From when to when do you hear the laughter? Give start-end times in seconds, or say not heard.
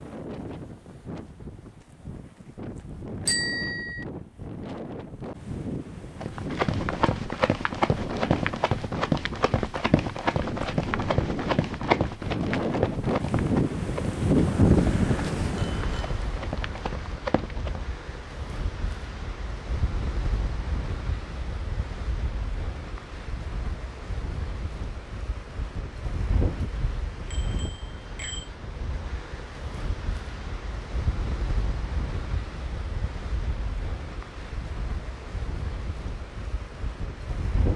not heard.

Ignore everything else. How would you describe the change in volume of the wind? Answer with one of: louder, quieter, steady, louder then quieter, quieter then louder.
louder then quieter.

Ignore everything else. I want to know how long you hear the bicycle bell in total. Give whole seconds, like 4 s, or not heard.
3 s.